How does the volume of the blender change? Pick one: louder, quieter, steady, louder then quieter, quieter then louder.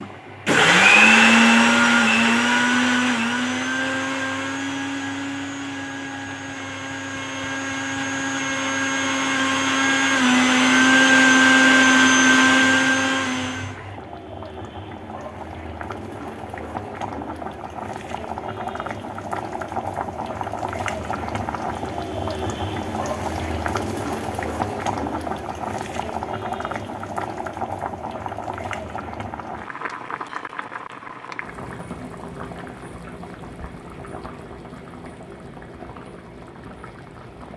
quieter then louder.